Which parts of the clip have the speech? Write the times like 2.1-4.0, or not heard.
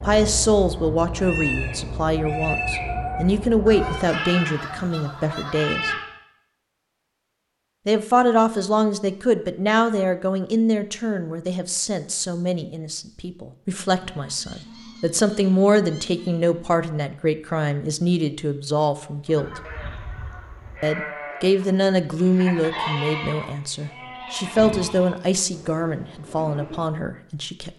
0.0-5.9, 7.8-19.6, 20.8-27.7.